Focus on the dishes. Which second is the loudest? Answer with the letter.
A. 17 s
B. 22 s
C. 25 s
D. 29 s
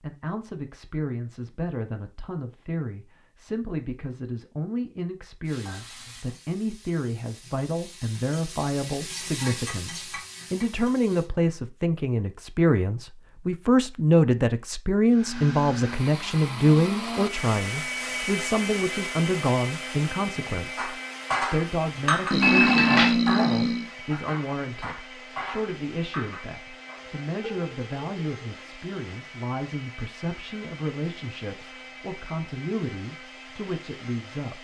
B.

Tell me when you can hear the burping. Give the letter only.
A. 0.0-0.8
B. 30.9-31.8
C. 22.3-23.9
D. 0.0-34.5
C.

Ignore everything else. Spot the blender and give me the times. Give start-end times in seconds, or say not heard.
15.1-34.5.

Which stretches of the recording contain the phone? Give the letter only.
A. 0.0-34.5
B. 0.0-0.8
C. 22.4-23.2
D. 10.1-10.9
C.